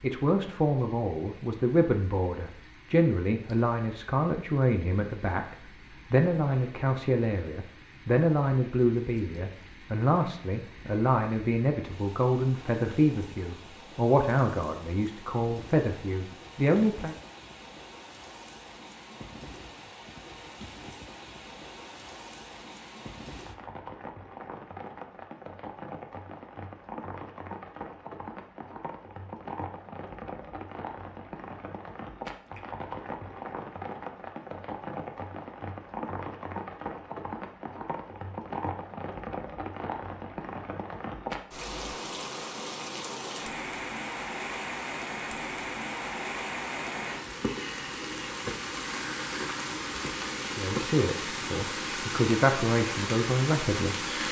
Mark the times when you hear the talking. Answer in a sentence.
The talking can be heard from 0.0 to 17.1 s and from 50.4 to 54.0 s.